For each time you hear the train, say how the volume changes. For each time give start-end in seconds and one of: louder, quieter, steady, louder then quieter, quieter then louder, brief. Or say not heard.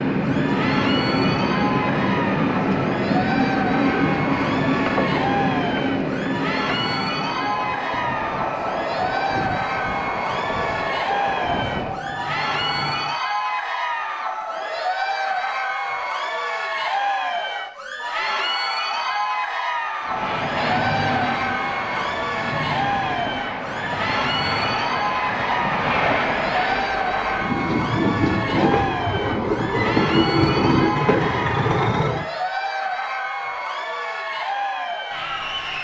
0.0-13.2 quieter
20.0-32.3 louder.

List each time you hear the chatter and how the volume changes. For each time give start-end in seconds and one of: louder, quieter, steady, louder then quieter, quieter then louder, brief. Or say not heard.
0.1-35.7 steady.